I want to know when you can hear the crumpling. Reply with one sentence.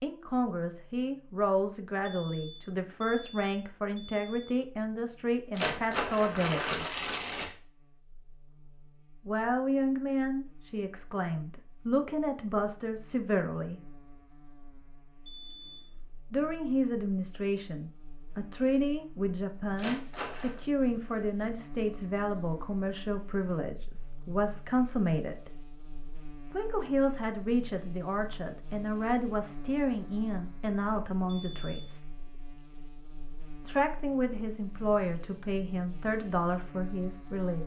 You can hear the crumpling from 5.5 to 7.5 s and from 19.8 to 20.6 s.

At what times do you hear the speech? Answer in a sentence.
You can hear the speech from 0.0 to 6.8 s, from 9.2 to 13.8 s, from 16.3 to 25.5 s, from 26.5 to 32.1 s and from 33.6 to 37.6 s.